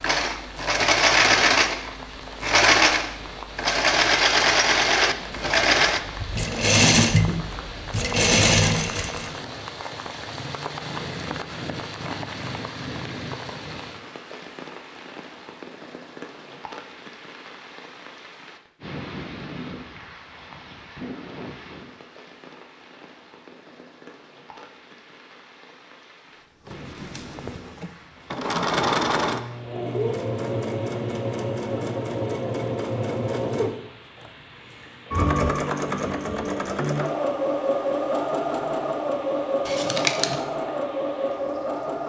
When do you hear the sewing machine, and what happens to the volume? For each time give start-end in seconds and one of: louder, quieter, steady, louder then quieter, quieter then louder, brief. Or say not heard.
0.0-9.4 steady
26.6-42.0 steady.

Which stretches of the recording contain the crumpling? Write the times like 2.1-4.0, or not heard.
39.6-40.4.